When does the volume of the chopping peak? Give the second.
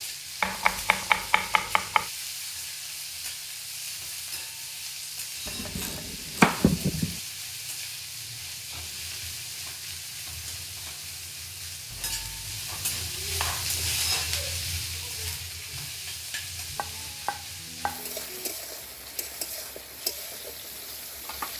7 s.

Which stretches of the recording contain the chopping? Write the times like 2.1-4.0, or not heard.
0.4-2.1, 5.5-7.2, 11.9-13.7, 16.8-18.5.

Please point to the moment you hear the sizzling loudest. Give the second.
14 s.